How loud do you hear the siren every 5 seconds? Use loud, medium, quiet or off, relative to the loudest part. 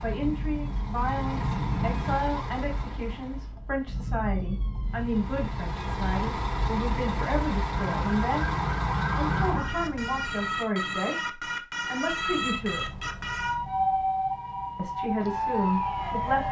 medium, loud, loud, loud.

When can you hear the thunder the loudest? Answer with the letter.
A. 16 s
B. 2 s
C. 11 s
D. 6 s
B.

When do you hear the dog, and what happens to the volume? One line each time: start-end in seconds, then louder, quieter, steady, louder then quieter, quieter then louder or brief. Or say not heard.
not heard.